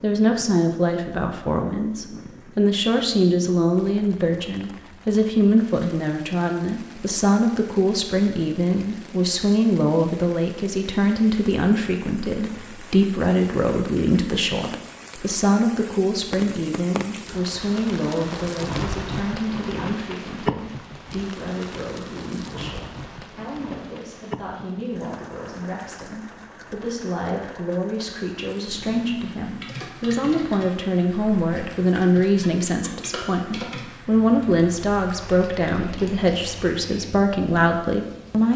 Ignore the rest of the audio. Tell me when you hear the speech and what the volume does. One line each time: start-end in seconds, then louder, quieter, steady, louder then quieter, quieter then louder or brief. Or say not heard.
0.0-38.5 quieter then louder.